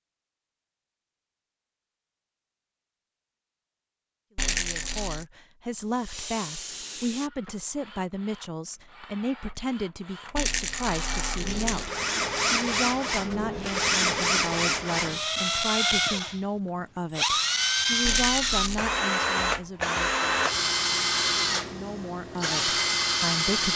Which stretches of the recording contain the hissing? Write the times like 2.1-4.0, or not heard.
5.7-7.3.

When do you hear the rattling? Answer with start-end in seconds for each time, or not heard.
4.3-5.2, 10.3-11.9, 18.1-18.9.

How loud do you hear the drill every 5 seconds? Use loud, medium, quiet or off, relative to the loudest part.
off, quiet, loud, loud, loud.